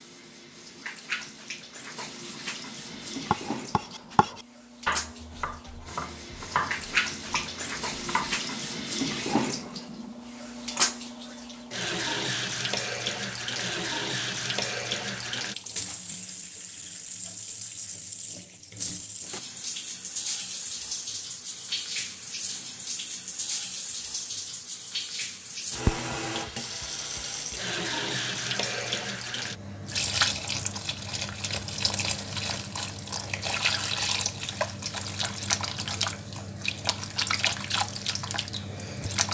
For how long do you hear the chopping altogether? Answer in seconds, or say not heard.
5 s.